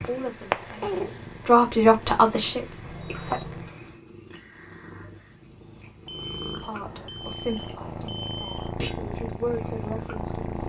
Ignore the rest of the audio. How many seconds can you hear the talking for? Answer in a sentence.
The talking can be heard for 7 seconds in total.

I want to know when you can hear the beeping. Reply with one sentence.
You can hear the beeping from 2.8 to 3.8 s and from 6.0 to 8.8 s.